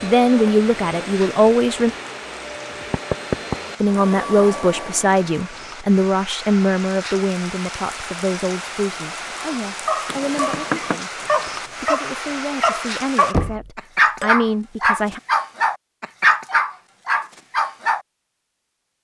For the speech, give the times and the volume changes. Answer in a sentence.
You can hear the speech briefly from 0.0 to 1.9 s; and from 3.8 to 15.2 s, getting quieter then louder.